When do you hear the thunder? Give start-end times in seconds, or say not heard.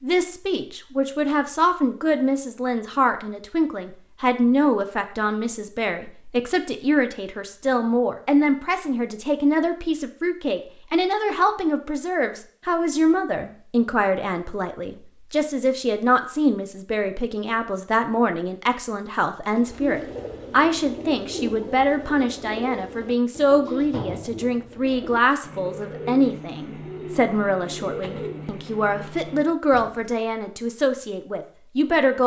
not heard.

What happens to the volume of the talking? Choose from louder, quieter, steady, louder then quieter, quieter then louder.
steady.